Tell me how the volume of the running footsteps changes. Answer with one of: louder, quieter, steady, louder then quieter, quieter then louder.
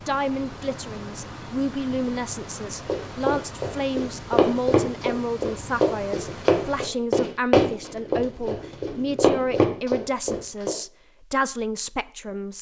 steady.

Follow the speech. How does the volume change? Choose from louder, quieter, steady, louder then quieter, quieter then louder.
steady.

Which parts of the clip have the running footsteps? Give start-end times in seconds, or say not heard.
2.9-10.7.